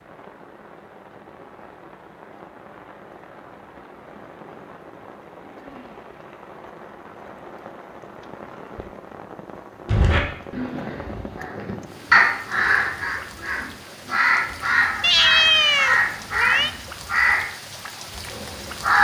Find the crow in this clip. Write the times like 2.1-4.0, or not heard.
9.8-17.4, 18.3-18.9.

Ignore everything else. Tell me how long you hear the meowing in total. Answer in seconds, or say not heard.
2 s.